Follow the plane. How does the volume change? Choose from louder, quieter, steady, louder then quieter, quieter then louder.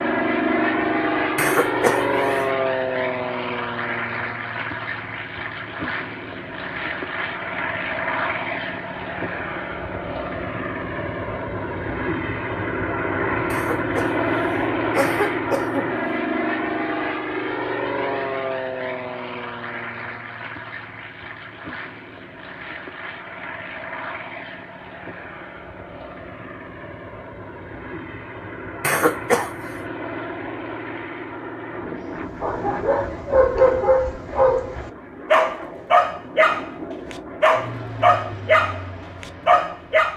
quieter.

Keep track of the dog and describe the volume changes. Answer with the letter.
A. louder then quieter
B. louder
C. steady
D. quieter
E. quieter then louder
C.